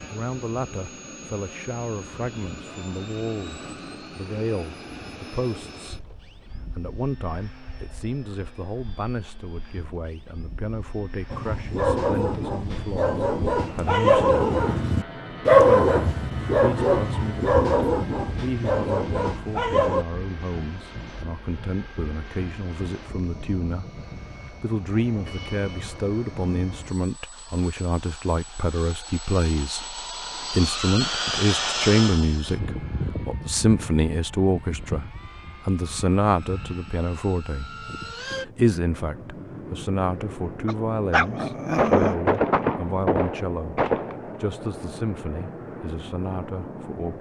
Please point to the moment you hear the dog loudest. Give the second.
16 s.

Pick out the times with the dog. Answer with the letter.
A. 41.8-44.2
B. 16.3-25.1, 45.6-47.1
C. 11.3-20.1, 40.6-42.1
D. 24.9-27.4
C.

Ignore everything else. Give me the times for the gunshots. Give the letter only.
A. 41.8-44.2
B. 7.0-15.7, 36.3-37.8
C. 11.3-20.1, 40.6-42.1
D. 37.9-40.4
A.